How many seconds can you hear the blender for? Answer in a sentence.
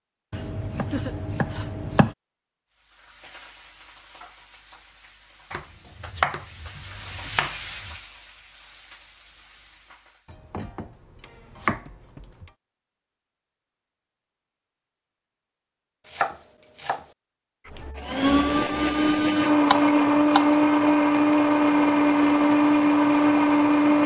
The blender can be heard for 6 seconds in total.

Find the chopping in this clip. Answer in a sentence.
The chopping can be heard from 0.3 to 2.1 s, from 5.5 to 8.0 s, from 10.3 to 12.5 s, from 16.1 to 17.1 s and from 19.6 to 20.6 s.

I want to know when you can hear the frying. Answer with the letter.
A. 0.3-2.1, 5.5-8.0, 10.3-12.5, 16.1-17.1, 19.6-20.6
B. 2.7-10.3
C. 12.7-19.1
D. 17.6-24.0
B.